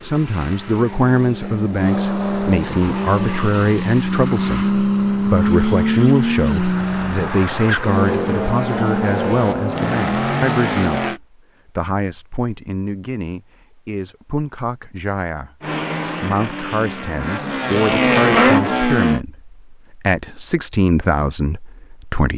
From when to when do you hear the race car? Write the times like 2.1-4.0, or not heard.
0.0-11.2, 15.6-19.2.